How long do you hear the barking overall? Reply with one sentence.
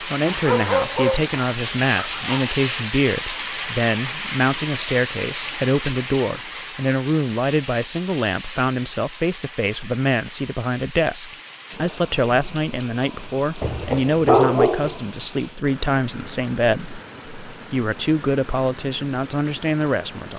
You can hear the barking for 4 seconds altogether.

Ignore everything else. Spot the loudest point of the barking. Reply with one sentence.
The volume of the barking peaks at 14 seconds.